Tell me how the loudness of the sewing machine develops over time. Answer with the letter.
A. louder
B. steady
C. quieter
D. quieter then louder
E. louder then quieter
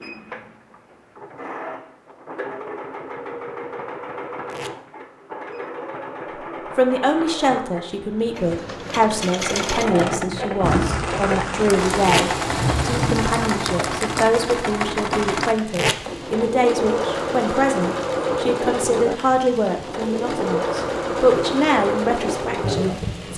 A.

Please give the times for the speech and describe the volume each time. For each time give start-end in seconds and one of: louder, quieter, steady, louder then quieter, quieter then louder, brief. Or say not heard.
6.8-23.3 steady.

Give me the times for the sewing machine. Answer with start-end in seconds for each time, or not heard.
0.0-23.3.